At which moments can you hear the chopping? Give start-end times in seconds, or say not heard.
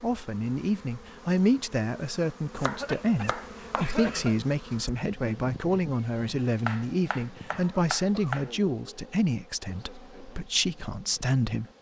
2.5-4.0, 6.7-8.5.